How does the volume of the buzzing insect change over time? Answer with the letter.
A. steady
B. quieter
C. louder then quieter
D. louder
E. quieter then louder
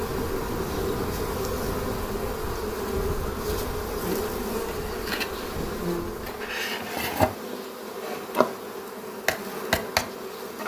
A.